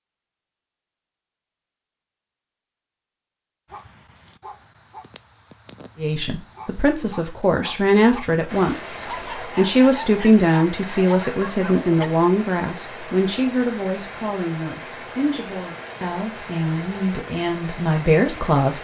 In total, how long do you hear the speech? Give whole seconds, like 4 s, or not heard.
13 s.